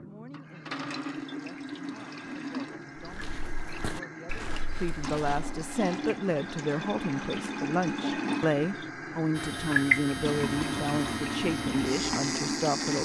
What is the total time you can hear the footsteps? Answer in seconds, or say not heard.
3 s.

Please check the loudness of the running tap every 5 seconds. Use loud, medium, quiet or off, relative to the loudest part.
medium, loud, loud.